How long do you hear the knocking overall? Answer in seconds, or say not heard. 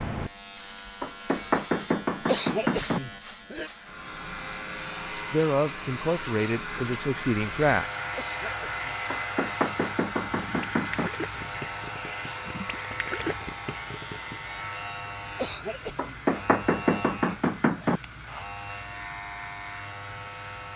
6 s.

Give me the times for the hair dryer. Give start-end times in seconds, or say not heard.
3.6-20.7.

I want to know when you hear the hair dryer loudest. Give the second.
9 s.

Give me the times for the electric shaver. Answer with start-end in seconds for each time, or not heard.
0.0-20.7.